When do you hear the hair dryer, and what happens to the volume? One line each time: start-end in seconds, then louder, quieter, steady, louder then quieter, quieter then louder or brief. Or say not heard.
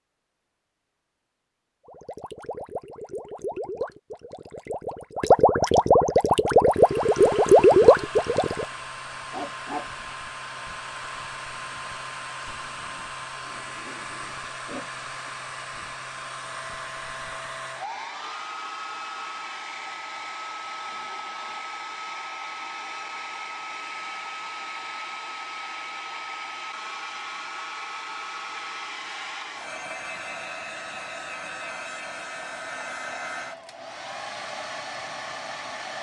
6.7-35.9 steady.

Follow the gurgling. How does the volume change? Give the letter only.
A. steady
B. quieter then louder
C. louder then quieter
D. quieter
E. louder
E.